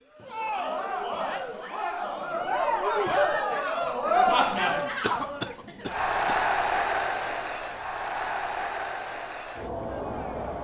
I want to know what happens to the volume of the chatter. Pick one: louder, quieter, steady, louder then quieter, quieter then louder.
louder then quieter.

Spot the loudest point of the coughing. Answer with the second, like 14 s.
5 s.